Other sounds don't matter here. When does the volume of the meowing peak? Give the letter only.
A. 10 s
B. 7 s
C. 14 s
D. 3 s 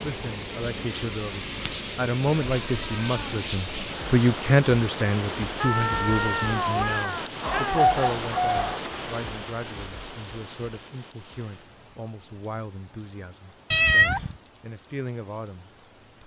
C.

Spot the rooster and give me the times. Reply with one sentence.
You can hear the rooster from 7.4 to 8.8 s.